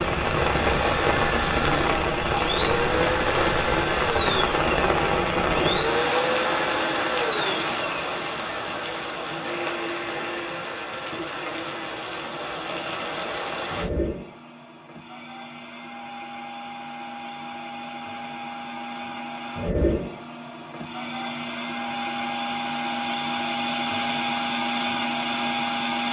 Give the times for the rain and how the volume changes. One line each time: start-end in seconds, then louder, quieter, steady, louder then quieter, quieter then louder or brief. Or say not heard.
0.0-13.9 quieter.